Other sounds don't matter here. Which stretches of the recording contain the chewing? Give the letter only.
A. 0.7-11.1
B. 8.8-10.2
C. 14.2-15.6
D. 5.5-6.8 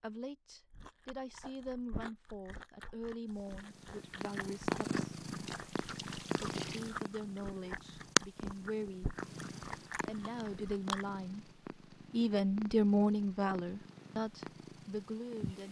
A.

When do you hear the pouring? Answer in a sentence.
The pouring can be heard from 5.5 to 6.8 s.